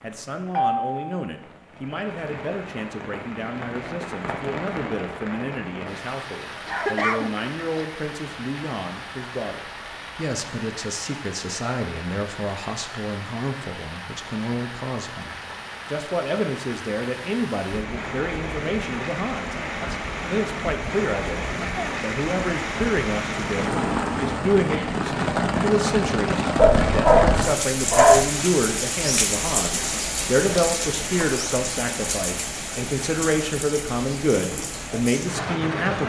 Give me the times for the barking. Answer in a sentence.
You can hear the barking from 26.6 to 28.3 s.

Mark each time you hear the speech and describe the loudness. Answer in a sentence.
The speech can be heard from 0.0 to 36.0 s, getting louder.